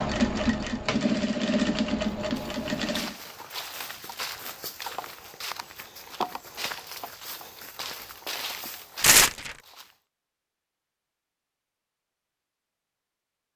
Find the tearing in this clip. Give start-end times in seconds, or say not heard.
9.0-9.6.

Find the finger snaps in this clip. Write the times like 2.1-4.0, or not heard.
not heard.